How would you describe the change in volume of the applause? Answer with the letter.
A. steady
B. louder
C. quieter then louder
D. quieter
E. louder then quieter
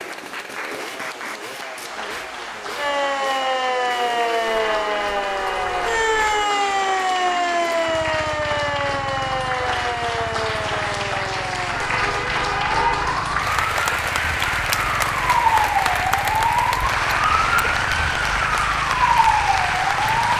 B.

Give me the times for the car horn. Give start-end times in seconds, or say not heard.
4.5-6.5, 11.8-13.2.